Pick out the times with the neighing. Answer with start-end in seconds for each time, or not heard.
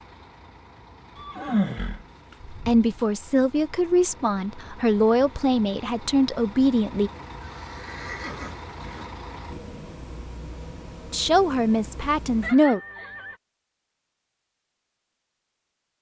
1.1-3.0, 7.4-9.1, 12.4-13.3.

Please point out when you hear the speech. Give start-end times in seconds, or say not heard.
2.6-7.1, 11.1-12.8.